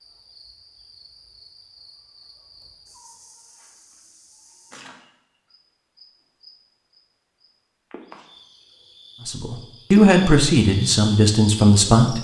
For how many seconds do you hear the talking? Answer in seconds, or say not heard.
3 s.